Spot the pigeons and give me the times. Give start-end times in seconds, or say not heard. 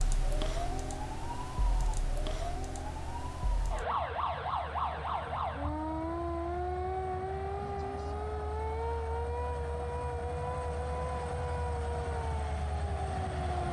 not heard.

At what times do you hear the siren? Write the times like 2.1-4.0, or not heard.
0.0-13.6.